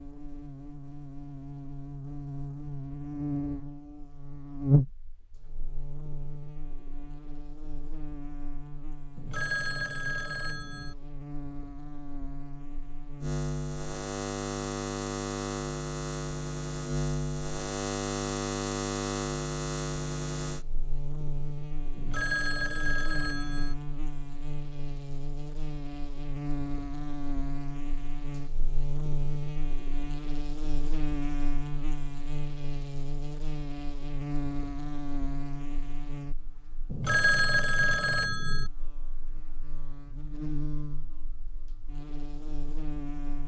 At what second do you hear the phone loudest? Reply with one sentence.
The volume of the phone peaks at 37 seconds.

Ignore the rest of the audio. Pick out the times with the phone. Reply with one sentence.
The phone can be heard from 9.2 to 10.9 s, from 21.9 to 23.8 s and from 36.9 to 38.7 s.